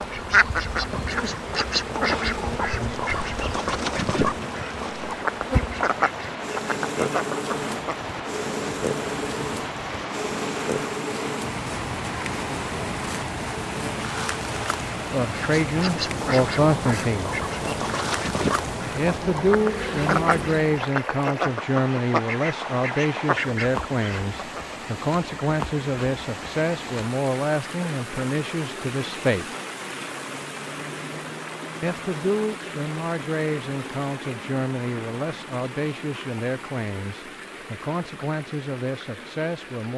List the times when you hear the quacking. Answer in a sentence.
You can hear the quacking from 0.0 to 8.0 s and from 15.2 to 24.6 s.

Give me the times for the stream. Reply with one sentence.
The stream can be heard from 0.0 to 39.9 s.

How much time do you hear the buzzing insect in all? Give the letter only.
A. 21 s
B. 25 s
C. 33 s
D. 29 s
A.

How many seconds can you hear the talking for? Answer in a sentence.
You can hear the talking for 21 seconds altogether.